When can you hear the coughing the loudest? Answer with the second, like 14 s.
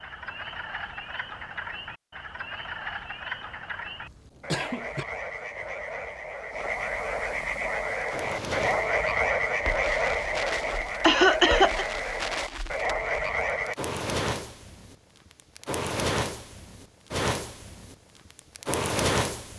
11 s.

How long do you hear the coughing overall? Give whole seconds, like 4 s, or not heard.
2 s.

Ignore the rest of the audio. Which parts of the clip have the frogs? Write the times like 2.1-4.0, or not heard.
0.0-13.8.